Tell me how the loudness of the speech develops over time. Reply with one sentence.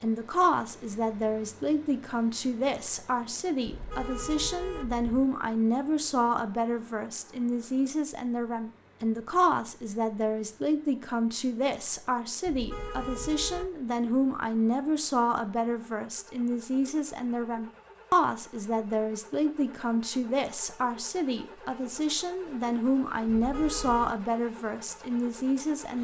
The loudness of the speech stays about the same.